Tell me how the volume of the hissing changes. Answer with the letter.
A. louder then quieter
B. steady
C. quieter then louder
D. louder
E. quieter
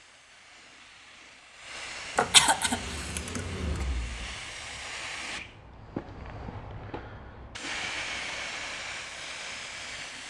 D.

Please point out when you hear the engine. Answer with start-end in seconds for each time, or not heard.
2.6-4.8.